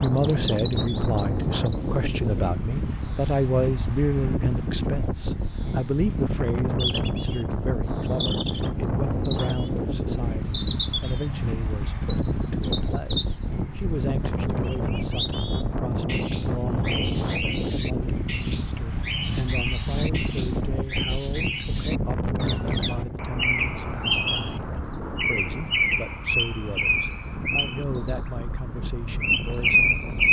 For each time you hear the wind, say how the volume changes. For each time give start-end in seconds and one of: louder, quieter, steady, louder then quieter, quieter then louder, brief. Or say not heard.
0.0-30.2 quieter.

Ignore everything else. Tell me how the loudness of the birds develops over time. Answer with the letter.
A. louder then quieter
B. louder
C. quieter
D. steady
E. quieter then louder
B.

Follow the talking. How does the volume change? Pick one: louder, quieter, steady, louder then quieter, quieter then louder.
quieter.